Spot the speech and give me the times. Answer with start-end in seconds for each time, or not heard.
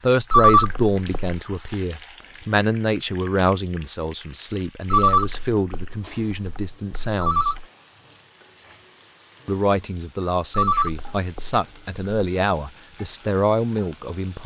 0.0-7.5, 9.4-14.4.